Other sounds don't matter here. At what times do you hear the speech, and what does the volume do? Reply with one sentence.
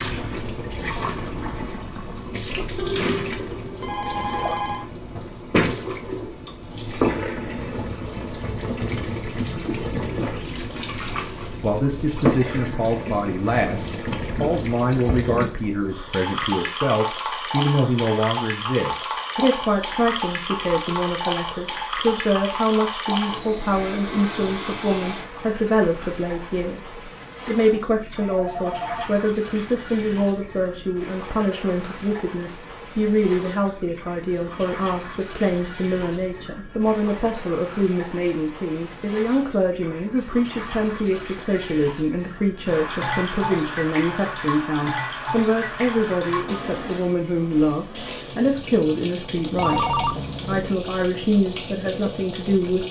You can hear the speech from 11.6 to 52.8 s, at a steady volume.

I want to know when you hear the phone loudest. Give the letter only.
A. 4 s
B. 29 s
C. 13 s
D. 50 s
D.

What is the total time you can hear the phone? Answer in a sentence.
You can hear the phone for 4 seconds altogether.